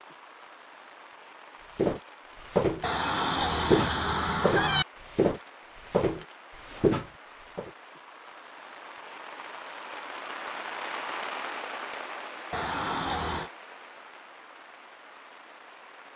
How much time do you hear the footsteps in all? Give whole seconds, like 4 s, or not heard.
6 s.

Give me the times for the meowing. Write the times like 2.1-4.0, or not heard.
2.8-4.8, 12.5-13.5.